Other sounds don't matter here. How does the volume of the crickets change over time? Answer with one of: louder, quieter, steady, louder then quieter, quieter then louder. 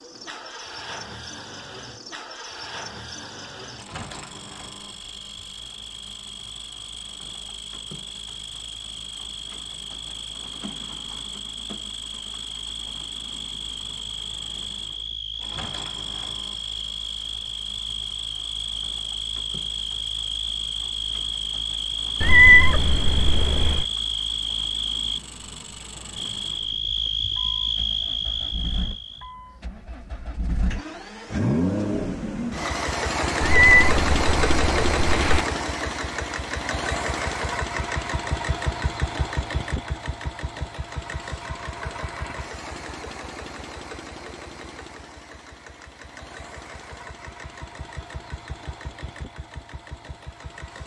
louder.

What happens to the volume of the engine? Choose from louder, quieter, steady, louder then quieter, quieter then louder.
louder then quieter.